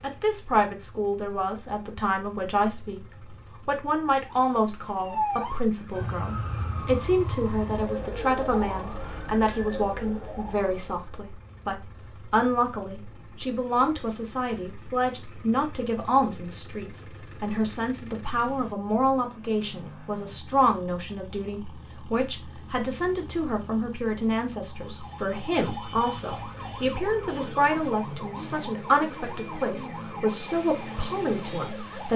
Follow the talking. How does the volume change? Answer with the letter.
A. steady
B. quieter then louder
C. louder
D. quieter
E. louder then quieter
A.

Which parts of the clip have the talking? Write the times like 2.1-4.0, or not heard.
0.0-3.0, 3.6-32.1.